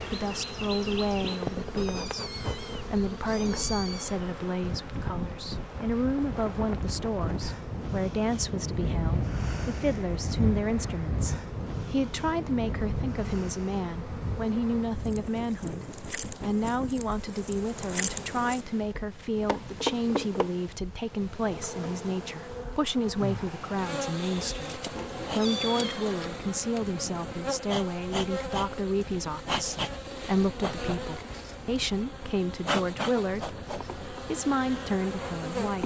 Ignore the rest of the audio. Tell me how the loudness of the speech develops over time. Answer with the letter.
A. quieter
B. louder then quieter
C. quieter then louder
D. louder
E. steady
E.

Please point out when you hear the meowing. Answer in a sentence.
The meowing can be heard from 1.8 to 4.2 s and from 24.9 to 26.1 s.